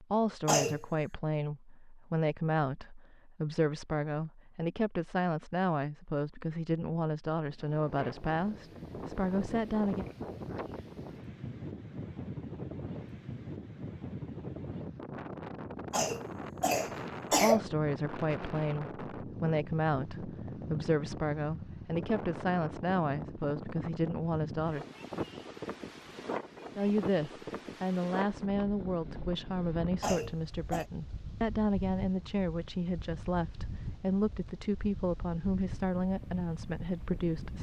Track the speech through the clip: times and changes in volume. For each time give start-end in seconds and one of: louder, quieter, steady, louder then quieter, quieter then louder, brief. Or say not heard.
0.0-10.1 steady
17.3-24.9 steady
26.8-37.5 steady.